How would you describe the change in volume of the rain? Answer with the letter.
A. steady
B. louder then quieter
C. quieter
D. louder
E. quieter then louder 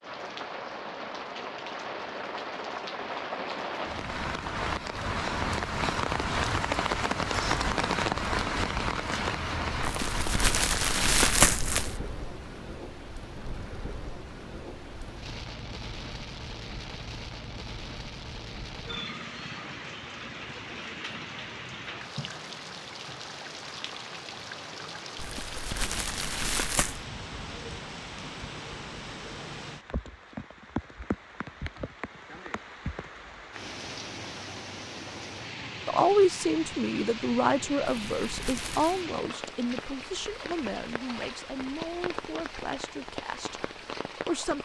C.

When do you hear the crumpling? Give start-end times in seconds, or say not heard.
9.8-11.9, 25.1-27.0, 37.9-39.0.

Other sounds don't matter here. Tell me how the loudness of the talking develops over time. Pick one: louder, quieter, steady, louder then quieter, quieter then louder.
quieter.